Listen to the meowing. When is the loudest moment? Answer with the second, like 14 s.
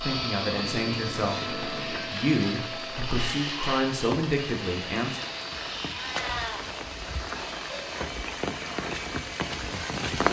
6 s.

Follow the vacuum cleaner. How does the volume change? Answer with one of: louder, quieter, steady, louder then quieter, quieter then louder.
quieter.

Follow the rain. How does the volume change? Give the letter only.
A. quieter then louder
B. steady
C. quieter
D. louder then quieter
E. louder
E.